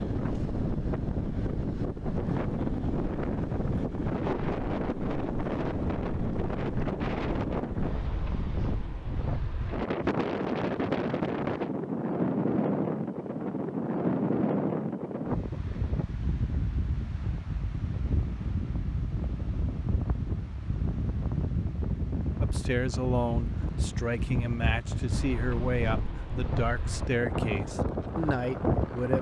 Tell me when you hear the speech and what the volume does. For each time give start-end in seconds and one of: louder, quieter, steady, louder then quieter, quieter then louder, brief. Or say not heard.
22.4-29.1 steady.